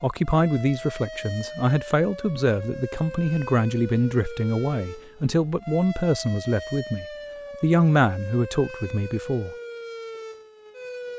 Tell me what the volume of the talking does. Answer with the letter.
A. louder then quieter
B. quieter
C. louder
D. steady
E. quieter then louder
D.